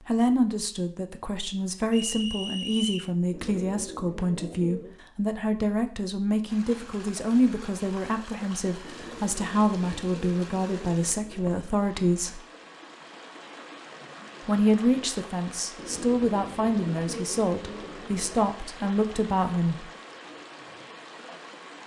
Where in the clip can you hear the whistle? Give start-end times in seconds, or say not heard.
1.9-3.1.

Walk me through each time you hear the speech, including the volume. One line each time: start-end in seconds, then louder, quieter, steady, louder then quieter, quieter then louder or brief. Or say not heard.
0.1-12.4 steady
14.4-19.9 steady.